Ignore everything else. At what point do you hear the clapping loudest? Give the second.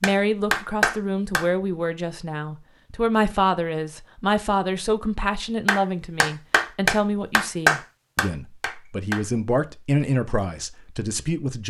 8 s.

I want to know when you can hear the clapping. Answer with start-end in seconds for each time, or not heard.
0.0-1.4, 5.7-9.2.